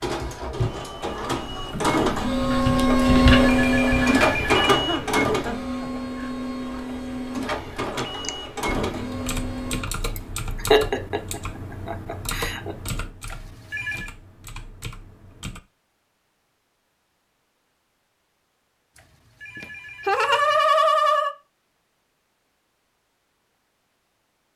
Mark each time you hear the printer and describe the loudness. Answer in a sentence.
You can hear the printer from 0.0 to 9.8 s, getting louder then quieter.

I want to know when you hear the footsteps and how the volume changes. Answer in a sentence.
The footsteps can't be heard in this clip.